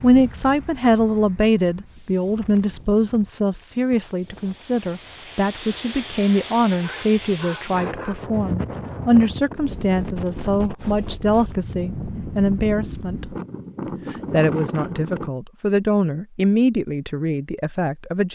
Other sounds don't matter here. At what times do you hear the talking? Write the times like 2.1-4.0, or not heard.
0.0-13.2, 14.1-18.3.